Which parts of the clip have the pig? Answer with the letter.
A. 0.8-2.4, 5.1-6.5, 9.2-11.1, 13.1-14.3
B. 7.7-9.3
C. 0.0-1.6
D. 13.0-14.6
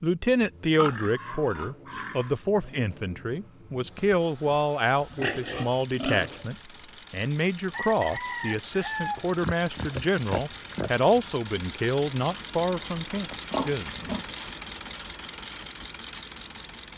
A.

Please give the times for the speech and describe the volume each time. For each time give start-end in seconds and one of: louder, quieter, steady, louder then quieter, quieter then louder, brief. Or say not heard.
0.0-14.1 steady.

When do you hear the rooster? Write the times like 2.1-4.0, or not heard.
7.7-9.3.